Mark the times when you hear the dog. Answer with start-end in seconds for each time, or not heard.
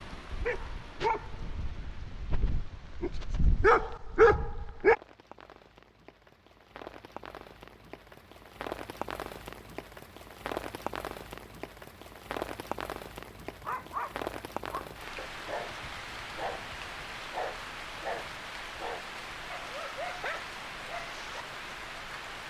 0.0-5.0, 13.4-21.4.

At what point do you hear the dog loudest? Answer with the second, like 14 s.
4 s.